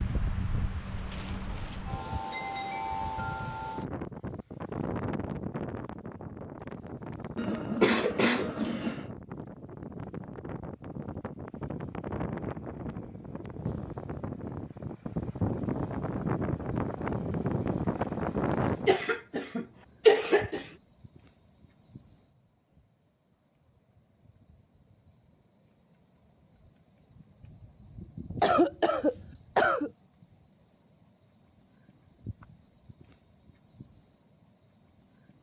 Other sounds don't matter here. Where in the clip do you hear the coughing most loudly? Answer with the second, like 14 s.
20 s.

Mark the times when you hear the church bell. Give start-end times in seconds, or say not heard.
not heard.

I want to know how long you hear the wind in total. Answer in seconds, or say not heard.
19 s.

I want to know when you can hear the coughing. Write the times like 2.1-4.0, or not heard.
7.3-9.1, 18.9-20.6, 28.4-29.9.